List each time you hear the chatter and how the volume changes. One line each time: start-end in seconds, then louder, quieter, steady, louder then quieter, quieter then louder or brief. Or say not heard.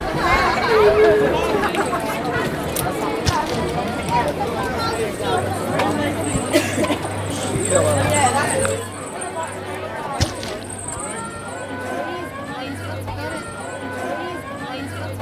0.0-15.1 quieter.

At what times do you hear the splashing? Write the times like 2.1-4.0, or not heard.
3.2-3.7, 10.2-10.7.